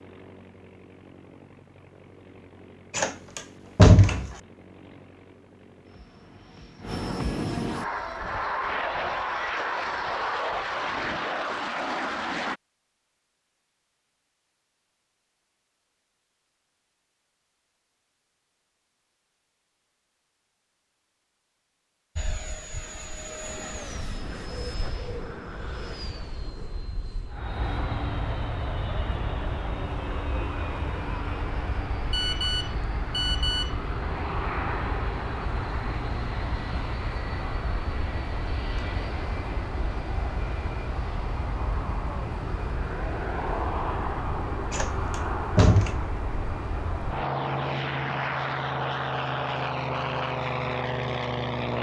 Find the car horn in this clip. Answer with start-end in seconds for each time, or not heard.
not heard.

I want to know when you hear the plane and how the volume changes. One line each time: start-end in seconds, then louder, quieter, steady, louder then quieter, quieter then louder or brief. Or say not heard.
0.0-12.6 louder
22.1-51.7 louder.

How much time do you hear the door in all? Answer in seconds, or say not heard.
3 s.